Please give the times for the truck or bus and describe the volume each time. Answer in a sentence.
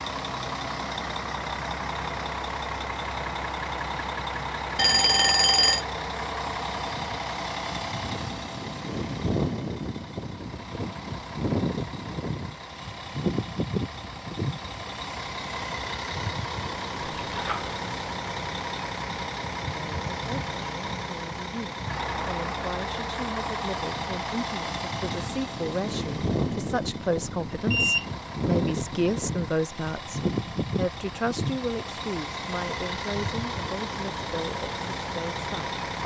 The truck or bus can be heard from 0.0 to 36.0 s, at a steady volume.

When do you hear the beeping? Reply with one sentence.
The beeping can be heard from 4.8 to 5.8 s, from 17.2 to 17.8 s and from 27.5 to 28.1 s.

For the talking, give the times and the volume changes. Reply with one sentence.
The talking can be heard from 19.6 to 36.0 s, getting louder then quieter.